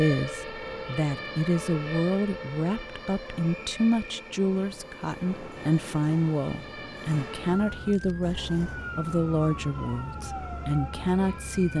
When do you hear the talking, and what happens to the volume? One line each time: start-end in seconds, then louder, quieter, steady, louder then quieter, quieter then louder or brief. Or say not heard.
0.0-11.7 steady.